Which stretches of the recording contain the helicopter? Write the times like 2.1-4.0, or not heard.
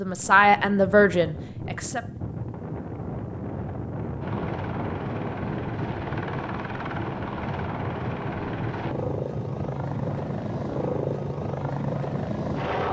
4.2-12.8.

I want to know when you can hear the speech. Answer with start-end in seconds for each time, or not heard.
0.0-2.0.